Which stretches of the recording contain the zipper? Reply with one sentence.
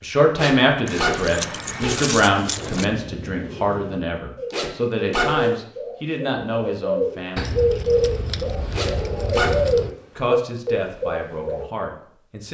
You can hear the zipper from 0.3 to 2.0 s, from 4.5 to 5.5 s and from 8.7 to 9.6 s.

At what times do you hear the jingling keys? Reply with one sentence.
The jingling keys can be heard from 0.8 to 2.9 s and from 7.3 to 9.9 s.